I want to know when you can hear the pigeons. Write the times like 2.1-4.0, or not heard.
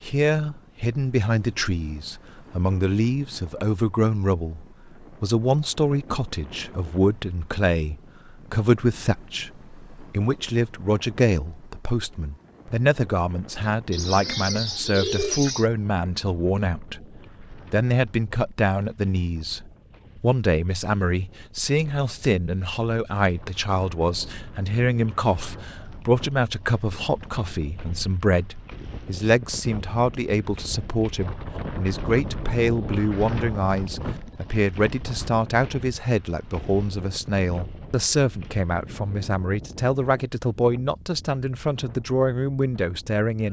13.9-15.7.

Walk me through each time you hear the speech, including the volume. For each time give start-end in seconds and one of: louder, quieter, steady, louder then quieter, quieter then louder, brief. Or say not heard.
0.0-43.4 steady.